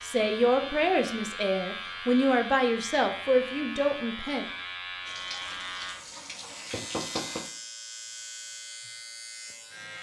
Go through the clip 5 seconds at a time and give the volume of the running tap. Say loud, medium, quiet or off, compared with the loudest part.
off, loud.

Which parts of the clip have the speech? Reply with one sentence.
You can hear the speech from 0.0 to 4.5 s.